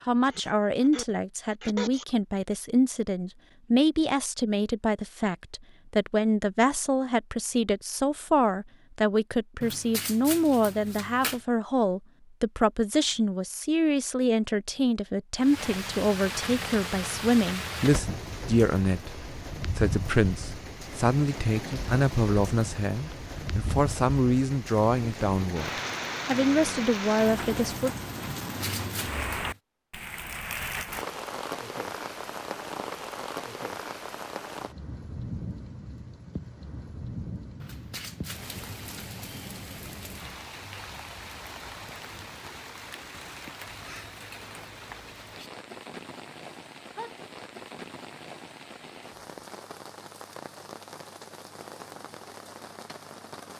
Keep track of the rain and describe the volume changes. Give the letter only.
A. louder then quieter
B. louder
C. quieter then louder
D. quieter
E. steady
D.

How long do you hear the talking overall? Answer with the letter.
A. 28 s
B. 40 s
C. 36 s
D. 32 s
A.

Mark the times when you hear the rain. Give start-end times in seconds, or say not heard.
15.3-53.5.